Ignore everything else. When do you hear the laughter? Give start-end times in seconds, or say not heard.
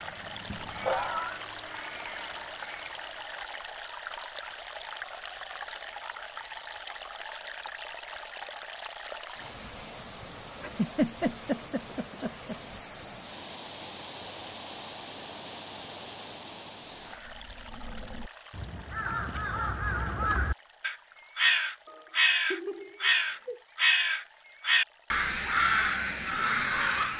0.5-1.4, 10.6-12.6, 21.9-23.6.